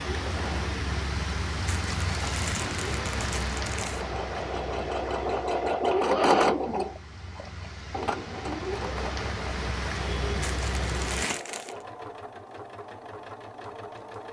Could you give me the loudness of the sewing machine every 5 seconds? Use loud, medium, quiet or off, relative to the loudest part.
medium, loud, quiet.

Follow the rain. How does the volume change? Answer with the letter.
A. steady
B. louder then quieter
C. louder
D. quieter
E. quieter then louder
E.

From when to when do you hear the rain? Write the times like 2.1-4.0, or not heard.
0.0-11.4.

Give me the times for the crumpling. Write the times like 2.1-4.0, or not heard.
1.6-4.0, 10.4-11.8.